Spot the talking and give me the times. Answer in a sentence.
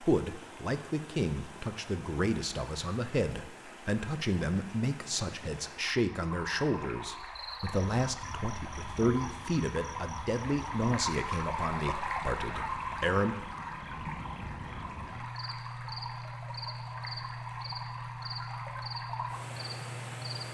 The talking can be heard from 0.0 to 13.3 s.